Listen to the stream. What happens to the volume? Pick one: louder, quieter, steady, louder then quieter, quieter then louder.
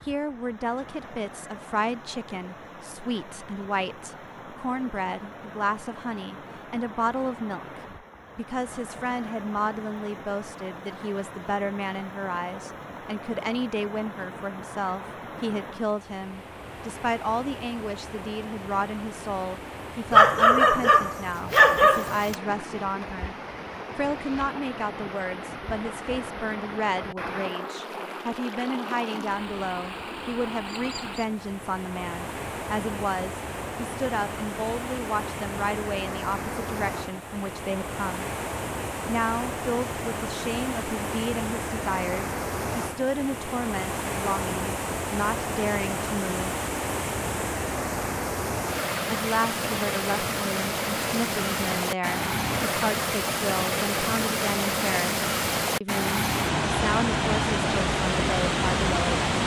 louder.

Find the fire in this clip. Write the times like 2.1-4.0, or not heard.
not heard.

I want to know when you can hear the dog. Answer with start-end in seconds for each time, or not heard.
20.1-22.4.